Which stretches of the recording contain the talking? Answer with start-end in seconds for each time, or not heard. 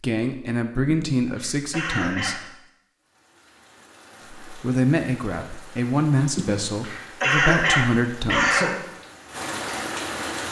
0.0-2.5, 4.5-8.7.